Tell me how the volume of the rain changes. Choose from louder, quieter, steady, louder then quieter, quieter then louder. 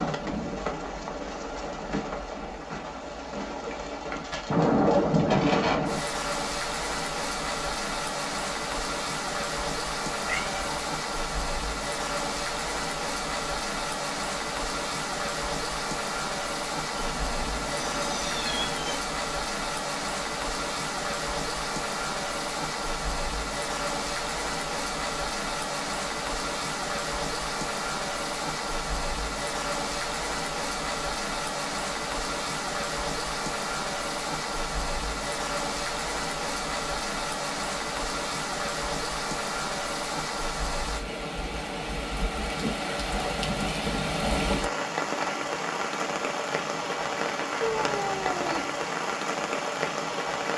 steady.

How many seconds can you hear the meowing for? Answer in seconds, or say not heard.
4 s.